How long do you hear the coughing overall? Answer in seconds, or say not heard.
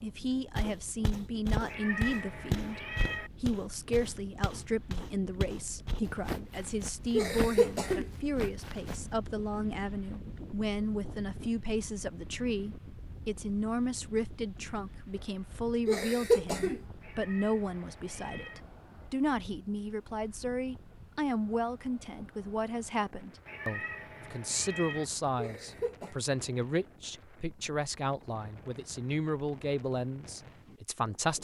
3 s.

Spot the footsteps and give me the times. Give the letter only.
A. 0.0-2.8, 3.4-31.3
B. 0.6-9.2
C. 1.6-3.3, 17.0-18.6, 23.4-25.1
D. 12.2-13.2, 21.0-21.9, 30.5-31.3
B.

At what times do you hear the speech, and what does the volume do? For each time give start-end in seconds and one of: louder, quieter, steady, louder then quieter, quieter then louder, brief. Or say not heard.
0.0-2.8 brief
3.4-31.3 steady.